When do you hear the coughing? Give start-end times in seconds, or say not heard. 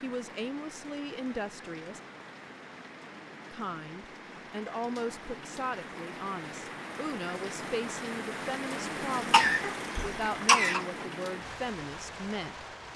9.3-10.8.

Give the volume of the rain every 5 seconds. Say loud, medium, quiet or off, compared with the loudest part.
medium, loud, loud.